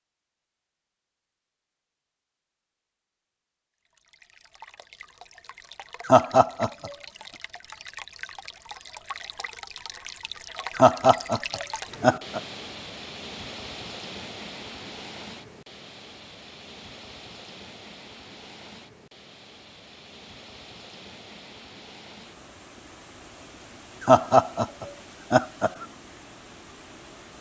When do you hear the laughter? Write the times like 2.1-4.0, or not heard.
6.0-7.0, 10.8-12.4, 24.0-25.9.